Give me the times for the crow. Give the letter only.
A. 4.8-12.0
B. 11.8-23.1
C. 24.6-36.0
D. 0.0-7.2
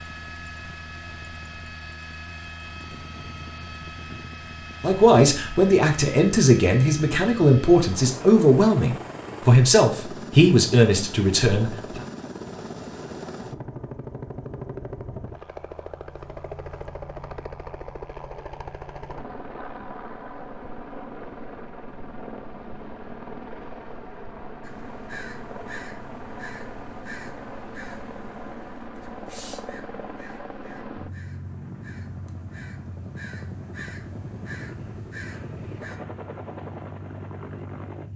C.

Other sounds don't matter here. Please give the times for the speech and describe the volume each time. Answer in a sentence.
The speech can be heard from 4.8 to 12.0 s, at a steady volume.